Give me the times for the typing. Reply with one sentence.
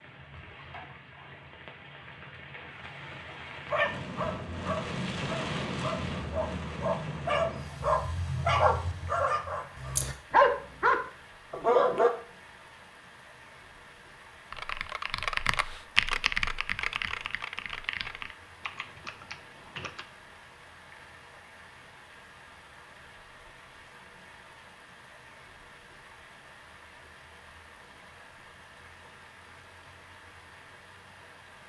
You can hear the typing from 14.5 to 20.1 s.